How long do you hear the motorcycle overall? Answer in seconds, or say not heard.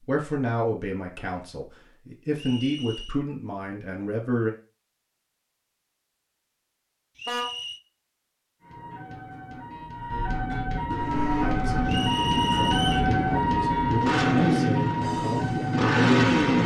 6 s.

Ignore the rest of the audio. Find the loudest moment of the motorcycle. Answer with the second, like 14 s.
16 s.